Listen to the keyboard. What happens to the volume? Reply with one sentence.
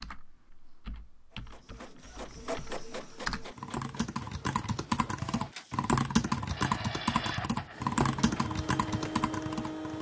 The volume of the keyboard goes up.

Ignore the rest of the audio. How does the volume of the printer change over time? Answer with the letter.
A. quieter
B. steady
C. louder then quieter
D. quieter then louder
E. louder
D.